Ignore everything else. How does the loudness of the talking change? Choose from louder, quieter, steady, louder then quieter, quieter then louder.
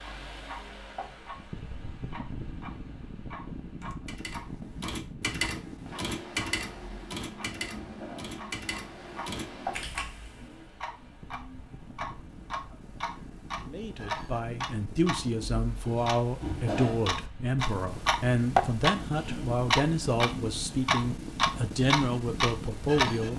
steady.